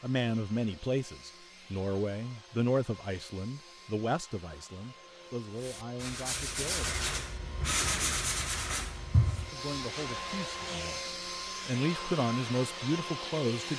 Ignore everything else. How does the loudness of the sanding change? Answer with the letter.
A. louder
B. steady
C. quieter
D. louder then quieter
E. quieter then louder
C.